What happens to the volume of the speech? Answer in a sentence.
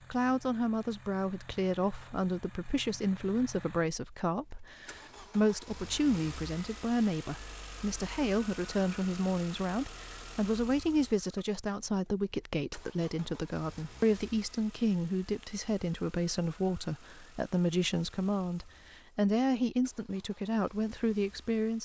The volume of the speech stays about the same.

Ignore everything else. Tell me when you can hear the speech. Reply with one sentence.
You can hear the speech from 0.1 to 21.8 s.